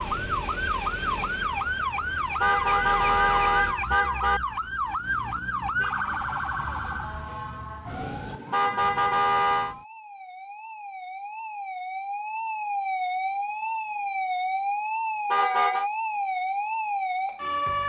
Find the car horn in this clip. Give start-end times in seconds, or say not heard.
2.4-4.4, 8.5-9.8, 15.3-15.9.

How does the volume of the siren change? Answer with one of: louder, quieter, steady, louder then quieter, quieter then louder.
quieter then louder.